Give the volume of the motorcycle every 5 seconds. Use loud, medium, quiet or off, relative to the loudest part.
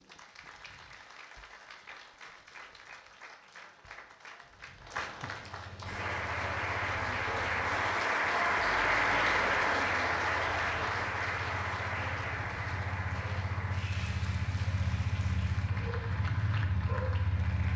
off, quiet, medium, loud.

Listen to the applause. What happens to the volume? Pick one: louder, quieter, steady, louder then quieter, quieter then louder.
louder then quieter.